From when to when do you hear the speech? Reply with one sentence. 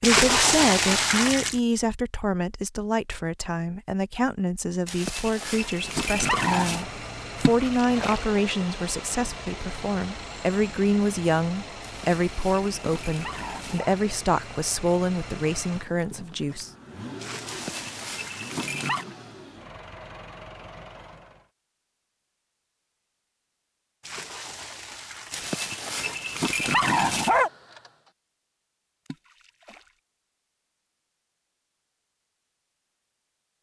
The speech can be heard from 0.0 to 16.7 s.